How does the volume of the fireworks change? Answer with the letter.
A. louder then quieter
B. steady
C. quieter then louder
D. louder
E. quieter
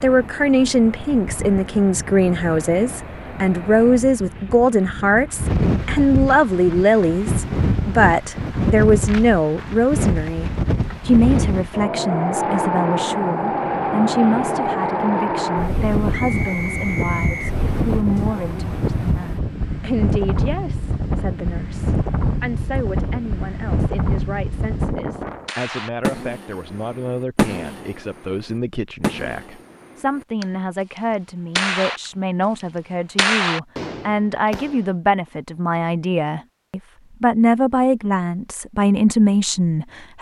C.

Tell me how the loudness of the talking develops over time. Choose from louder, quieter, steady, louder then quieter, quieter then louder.
quieter then louder.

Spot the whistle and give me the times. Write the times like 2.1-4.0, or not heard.
16.1-17.6.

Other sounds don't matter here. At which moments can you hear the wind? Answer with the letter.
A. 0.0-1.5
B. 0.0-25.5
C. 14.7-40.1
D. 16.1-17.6
B.